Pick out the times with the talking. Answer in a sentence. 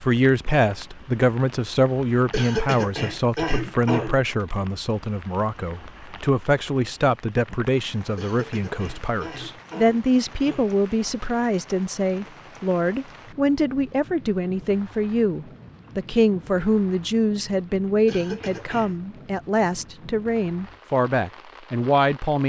The talking can be heard from 0.0 to 22.4 s.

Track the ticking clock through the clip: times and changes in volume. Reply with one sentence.
The ticking clock can't be heard in this clip.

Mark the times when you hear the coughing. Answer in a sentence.
The coughing can be heard from 2.3 to 4.7 s, from 8.2 to 10.7 s and from 18.1 to 18.9 s.